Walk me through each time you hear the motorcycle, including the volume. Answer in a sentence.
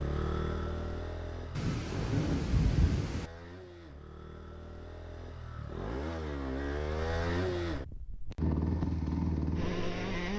The motorcycle can be heard from 0.0 to 10.3 s, getting quieter then louder.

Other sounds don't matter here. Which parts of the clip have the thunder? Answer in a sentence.
The thunder can be heard from 1.6 to 3.2 s.